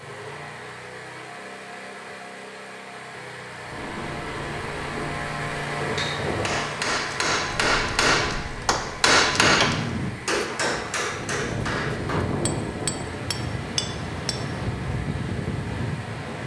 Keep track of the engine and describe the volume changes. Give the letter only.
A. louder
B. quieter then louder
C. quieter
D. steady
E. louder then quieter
E.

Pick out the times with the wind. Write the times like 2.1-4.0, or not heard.
3.6-16.4.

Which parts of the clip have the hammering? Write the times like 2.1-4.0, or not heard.
6.0-14.4.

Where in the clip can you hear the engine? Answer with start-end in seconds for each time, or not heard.
0.0-16.4.